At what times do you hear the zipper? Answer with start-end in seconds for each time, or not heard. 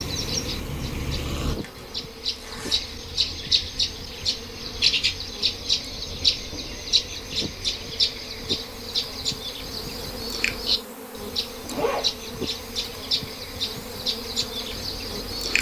1.4-3.0, 11.7-12.1.